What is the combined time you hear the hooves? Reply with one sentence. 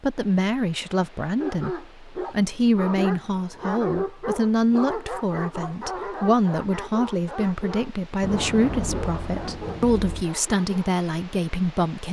The hooves can't be heard in this clip.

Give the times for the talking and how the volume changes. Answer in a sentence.
The talking can be heard from 0.0 to 12.0 s, at a steady volume.